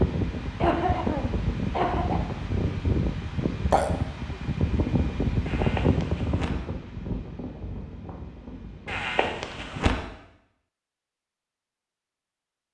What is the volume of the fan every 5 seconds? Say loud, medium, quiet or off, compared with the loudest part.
loud, loud, off.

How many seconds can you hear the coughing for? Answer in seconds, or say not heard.
4 s.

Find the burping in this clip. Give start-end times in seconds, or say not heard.
3.7-4.3.